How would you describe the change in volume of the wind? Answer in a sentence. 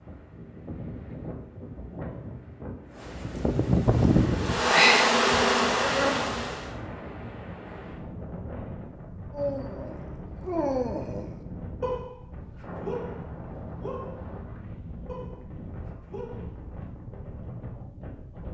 The loudness of the wind goes down.